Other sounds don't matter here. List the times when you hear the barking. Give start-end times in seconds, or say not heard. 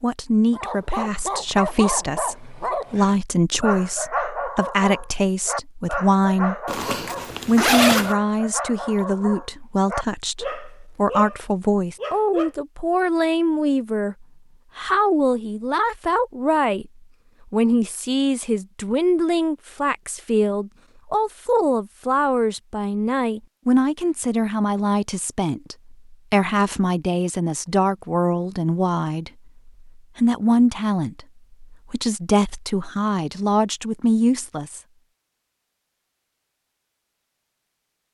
0.5-12.5.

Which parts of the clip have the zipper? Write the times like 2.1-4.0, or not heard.
6.7-8.2.